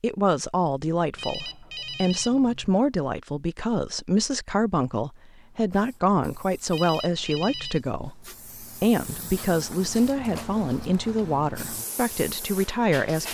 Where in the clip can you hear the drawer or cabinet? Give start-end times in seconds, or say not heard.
not heard.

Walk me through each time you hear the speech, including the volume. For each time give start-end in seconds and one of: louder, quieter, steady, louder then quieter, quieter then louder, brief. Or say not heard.
0.0-13.2 steady.